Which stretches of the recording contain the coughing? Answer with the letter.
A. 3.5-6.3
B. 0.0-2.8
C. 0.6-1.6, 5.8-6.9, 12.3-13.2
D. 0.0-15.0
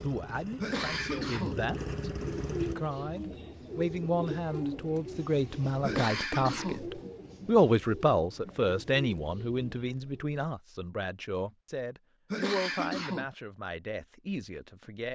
C.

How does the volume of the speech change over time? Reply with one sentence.
The loudness of the speech goes up, then down.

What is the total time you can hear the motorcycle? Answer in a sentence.
You can hear the motorcycle for 3 seconds altogether.